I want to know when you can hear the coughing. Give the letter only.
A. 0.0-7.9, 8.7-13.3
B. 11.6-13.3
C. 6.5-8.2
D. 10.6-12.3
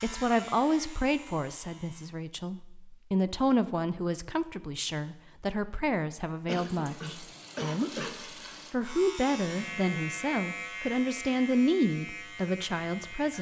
C.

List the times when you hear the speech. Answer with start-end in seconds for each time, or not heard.
0.0-7.9, 8.7-13.3.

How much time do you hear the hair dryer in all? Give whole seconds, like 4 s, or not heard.
not heard.